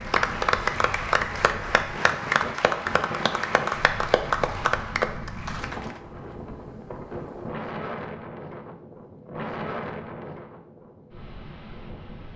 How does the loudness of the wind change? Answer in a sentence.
The loudness of the wind stays about the same.